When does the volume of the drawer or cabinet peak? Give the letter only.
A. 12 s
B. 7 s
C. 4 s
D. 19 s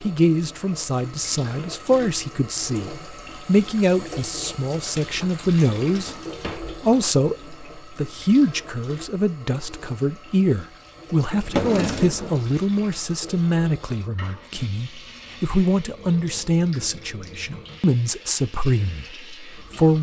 A.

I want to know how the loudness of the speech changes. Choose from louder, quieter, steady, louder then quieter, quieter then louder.
steady.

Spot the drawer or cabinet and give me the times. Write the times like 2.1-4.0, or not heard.
5.8-6.7, 11.3-12.4.